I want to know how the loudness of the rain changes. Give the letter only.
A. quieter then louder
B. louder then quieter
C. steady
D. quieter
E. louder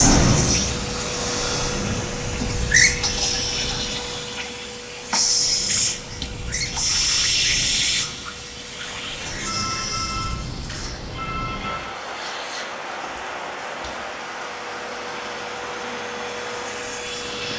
A.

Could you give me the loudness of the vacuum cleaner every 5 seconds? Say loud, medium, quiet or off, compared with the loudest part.
loud, loud, quiet, medium.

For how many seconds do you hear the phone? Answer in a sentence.
The phone can be heard for 3 seconds in total.